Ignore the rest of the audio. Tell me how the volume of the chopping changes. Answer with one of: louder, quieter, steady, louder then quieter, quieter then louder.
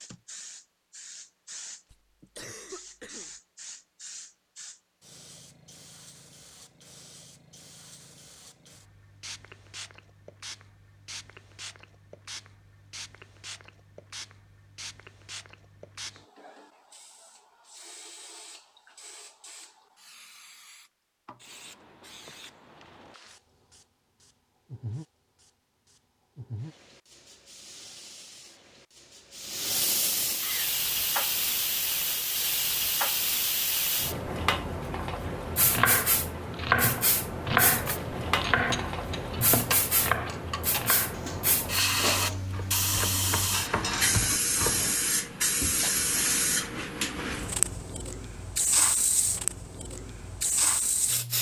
quieter then louder.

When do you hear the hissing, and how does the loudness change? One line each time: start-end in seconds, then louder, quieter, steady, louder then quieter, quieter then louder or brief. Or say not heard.
0.0-51.3 louder.